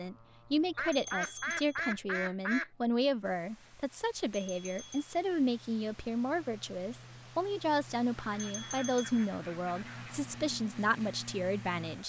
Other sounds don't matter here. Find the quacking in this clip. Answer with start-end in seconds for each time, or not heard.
0.8-2.7, 8.2-10.2.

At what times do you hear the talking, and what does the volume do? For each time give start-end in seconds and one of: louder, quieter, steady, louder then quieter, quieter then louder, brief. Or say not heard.
0.0-12.0 steady.